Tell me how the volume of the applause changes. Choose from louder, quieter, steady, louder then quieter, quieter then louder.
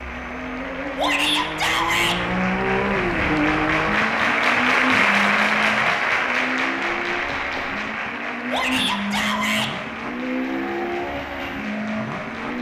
louder then quieter.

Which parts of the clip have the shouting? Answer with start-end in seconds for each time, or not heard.
0.9-2.2, 8.5-9.7.